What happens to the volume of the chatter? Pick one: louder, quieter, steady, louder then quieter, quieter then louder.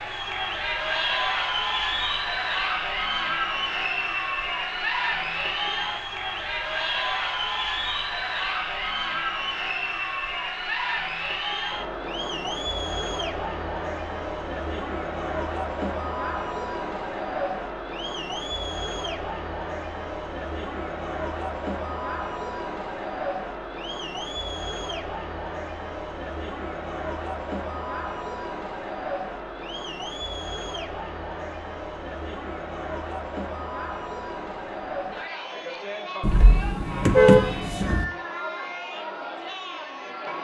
quieter.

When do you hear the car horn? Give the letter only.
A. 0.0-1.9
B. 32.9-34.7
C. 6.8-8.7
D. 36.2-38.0
D.